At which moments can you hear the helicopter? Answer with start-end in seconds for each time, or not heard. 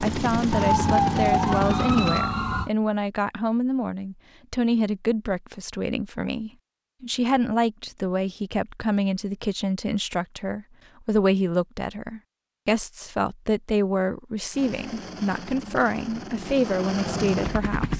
0.0-2.2, 14.5-17.9.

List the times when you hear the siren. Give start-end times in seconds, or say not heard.
0.0-2.7.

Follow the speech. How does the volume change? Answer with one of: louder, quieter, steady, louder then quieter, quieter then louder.
steady.